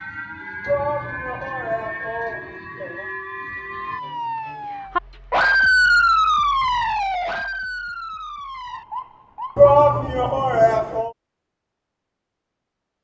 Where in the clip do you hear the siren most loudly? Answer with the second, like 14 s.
6 s.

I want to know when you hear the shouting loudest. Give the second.
10 s.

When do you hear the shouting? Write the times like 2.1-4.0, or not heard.
0.7-3.0, 9.6-11.1.